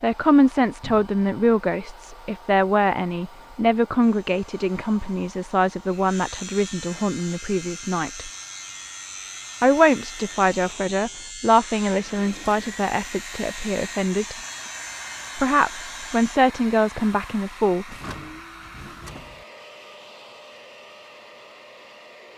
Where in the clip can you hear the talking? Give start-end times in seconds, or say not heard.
0.0-8.3, 9.6-14.3, 15.3-17.9.